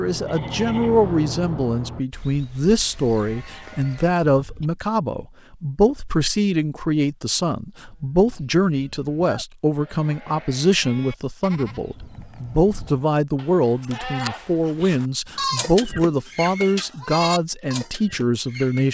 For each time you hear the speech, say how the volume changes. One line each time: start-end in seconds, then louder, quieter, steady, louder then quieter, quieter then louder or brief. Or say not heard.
0.0-18.8 steady.